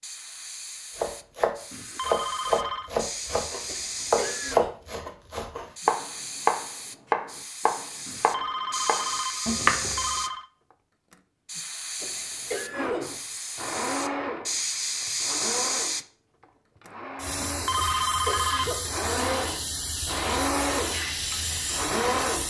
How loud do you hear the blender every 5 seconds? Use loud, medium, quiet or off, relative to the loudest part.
off, off, loud, medium, loud.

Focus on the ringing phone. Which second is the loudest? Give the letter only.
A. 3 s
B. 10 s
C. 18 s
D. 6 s
C.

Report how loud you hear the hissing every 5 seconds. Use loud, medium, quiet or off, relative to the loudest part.
medium, loud, loud, loud, loud.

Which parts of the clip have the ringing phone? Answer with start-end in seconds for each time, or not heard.
1.7-2.9, 8.1-10.5, 17.4-18.9.